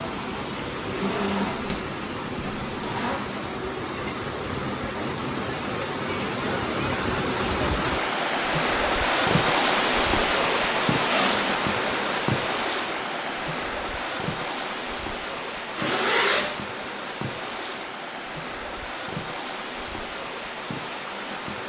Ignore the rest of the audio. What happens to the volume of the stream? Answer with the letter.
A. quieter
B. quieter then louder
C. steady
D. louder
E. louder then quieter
E.